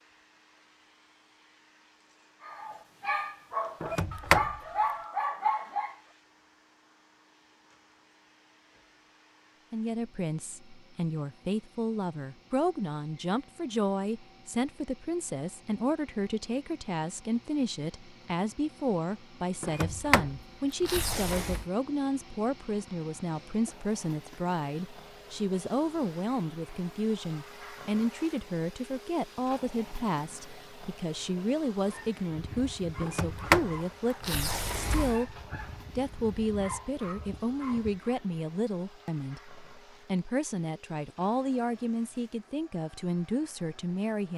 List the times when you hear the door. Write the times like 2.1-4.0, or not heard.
3.8-4.6, 19.6-21.6, 33.0-35.2.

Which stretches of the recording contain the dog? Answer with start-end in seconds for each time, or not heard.
2.4-6.0, 31.9-38.1.